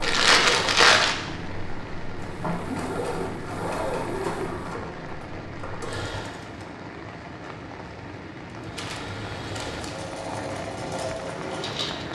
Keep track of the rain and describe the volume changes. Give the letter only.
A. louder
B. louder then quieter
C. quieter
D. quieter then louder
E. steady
E.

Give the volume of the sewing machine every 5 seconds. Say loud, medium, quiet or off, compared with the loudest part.
loud, medium, loud.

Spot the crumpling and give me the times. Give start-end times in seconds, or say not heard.
0.0-1.1, 8.8-10.1.